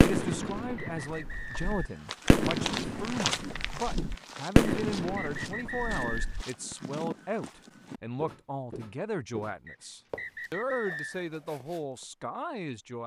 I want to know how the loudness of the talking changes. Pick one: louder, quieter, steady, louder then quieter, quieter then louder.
steady.